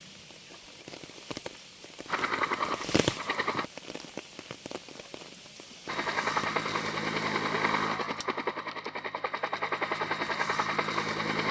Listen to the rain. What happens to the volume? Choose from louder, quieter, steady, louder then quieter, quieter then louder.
louder then quieter.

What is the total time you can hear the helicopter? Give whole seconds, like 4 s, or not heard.
7 s.